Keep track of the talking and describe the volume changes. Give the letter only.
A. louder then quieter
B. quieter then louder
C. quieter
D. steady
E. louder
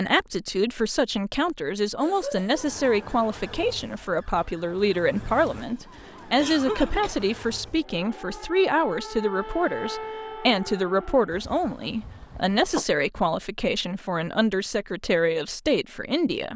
D.